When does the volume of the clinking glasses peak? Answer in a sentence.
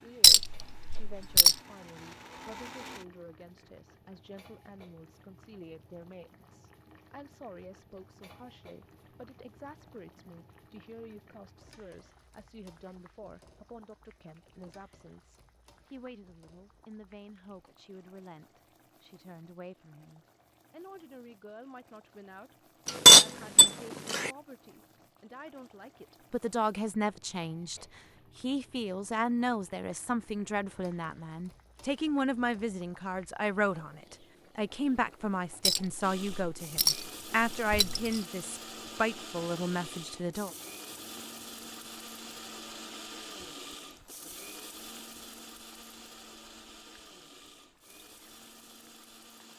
The volume of the clinking glasses peaks at 23 seconds.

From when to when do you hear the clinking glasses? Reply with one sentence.
The clinking glasses can be heard from 0.2 to 1.6 s, from 22.9 to 24.3 s and from 35.6 to 38.2 s.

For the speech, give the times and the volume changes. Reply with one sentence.
The speech can be heard from 0.0 to 40.5 s, getting louder.